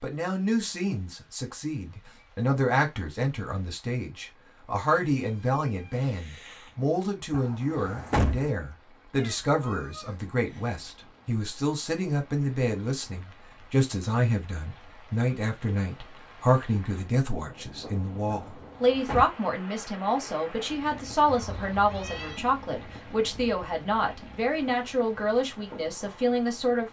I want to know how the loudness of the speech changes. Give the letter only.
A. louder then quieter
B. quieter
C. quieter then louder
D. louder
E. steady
E.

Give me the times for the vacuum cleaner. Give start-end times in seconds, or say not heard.
not heard.